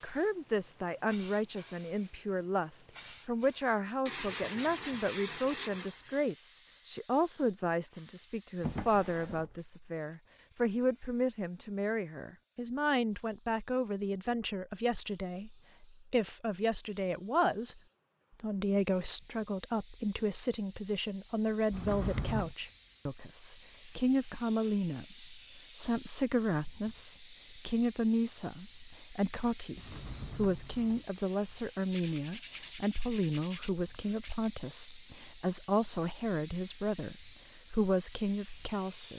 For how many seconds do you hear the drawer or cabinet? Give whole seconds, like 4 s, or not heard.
3 s.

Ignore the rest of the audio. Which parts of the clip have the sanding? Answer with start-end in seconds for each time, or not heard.
4.0-6.3, 31.9-34.5.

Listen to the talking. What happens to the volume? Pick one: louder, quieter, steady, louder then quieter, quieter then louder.
steady.